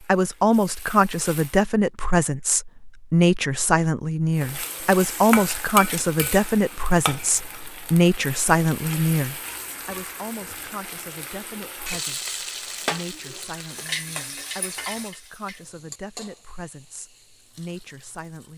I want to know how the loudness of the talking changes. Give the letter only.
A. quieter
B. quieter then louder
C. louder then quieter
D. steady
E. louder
A.